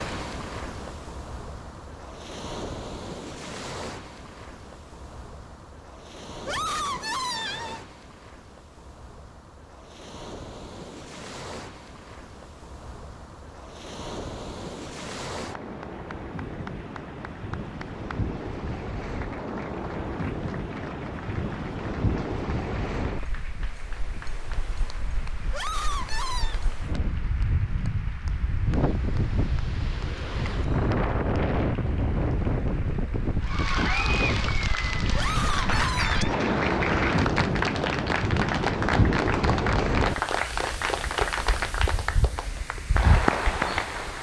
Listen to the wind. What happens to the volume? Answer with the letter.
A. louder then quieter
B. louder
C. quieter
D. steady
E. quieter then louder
B.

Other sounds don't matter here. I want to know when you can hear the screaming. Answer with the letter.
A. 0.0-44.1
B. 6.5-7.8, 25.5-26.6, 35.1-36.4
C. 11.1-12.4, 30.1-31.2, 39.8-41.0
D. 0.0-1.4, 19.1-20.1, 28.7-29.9
B.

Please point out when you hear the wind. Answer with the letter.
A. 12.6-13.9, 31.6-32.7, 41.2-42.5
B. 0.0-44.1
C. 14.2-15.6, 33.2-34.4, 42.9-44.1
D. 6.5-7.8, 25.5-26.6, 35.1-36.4
B.